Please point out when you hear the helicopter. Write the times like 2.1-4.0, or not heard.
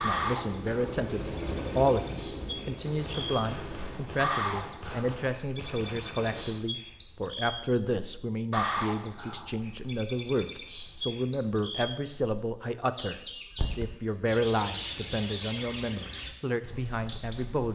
0.0-4.2.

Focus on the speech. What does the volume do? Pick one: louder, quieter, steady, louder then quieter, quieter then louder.
steady.